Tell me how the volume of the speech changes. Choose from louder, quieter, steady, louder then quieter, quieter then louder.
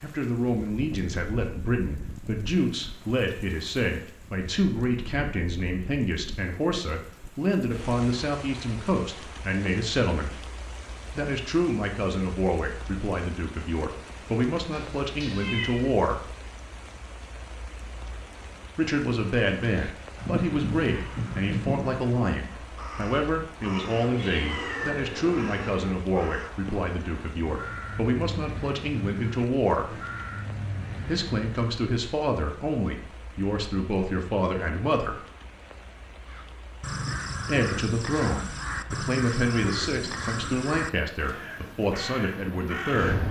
steady.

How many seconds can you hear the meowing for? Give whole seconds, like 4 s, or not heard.
3 s.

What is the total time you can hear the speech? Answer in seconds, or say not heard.
37 s.